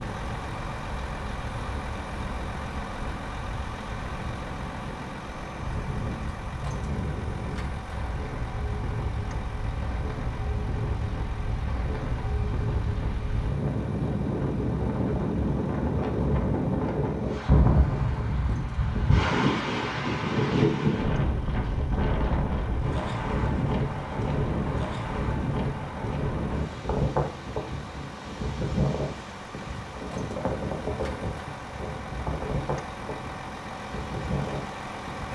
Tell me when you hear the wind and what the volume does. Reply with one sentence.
You can hear the wind from 0.0 to 35.2 s, getting louder then quieter.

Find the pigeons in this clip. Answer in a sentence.
The pigeons can't be heard in this clip.